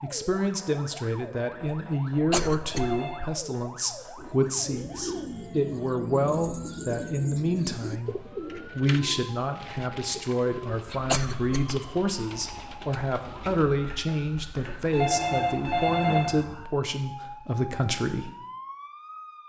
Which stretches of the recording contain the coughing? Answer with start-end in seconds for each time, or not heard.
2.3-3.0, 11.1-11.8.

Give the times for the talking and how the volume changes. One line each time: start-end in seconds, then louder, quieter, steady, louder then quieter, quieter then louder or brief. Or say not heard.
0.0-18.3 steady.